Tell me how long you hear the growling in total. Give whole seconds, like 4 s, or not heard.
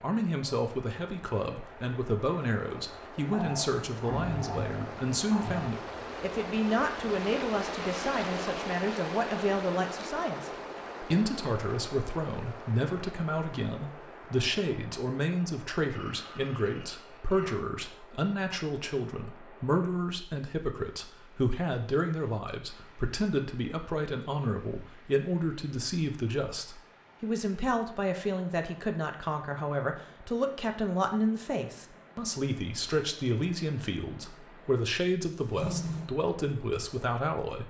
5 s.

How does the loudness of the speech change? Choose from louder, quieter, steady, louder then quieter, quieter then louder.
steady.